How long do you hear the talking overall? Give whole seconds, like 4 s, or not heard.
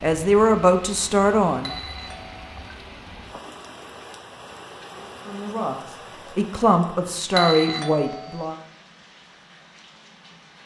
5 s.